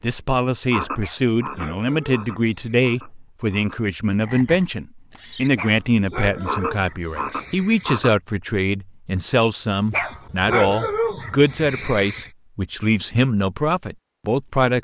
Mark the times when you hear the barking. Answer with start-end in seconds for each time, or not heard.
1.0-3.0, 5.5-8.0, 9.9-12.3.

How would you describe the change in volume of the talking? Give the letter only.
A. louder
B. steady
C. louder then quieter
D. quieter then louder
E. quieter
B.